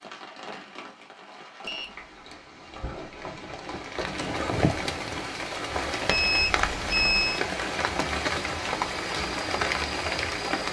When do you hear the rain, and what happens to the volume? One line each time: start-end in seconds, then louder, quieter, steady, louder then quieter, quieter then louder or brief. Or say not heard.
0.0-10.6 louder.